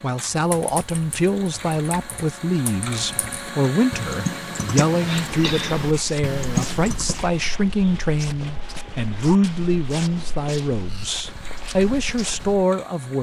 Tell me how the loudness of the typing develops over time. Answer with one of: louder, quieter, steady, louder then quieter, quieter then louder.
louder.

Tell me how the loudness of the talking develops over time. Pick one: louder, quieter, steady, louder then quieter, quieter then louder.
steady.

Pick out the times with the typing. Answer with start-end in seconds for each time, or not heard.
0.3-7.2.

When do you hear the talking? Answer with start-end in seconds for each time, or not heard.
0.0-13.1.